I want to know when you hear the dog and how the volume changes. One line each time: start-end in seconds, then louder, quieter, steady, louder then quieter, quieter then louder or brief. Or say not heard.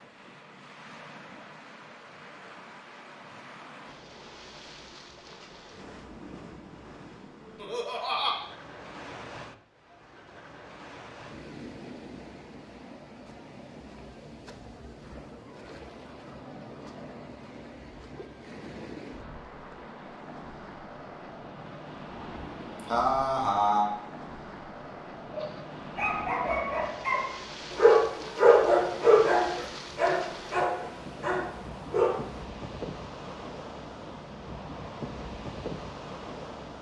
25.3-32.2 louder then quieter.